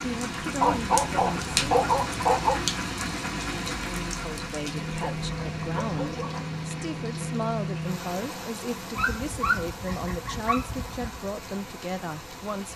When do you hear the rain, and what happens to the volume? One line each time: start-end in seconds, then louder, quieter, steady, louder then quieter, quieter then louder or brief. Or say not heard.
0.0-12.7 quieter.